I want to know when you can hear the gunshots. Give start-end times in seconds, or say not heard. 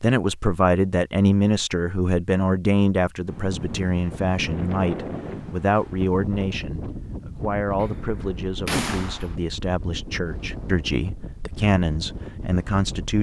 7.8-9.3.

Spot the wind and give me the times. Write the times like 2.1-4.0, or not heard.
3.2-13.1.